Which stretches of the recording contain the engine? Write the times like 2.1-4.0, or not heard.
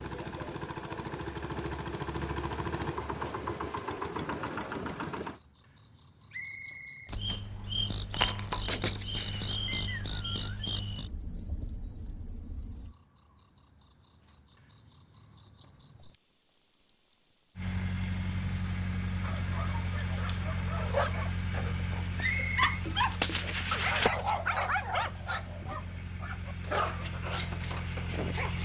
0.0-5.4, 17.6-28.6.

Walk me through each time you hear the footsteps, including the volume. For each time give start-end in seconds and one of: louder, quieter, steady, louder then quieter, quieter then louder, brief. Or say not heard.
not heard.